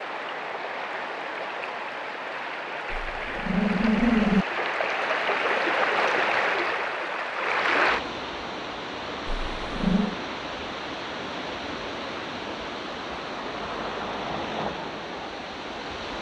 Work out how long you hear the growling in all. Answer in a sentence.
The growling can be heard for 2 seconds in total.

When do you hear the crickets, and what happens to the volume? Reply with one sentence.
You can't hear the crickets here.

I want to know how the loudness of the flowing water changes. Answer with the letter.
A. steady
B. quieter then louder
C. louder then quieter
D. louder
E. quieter
C.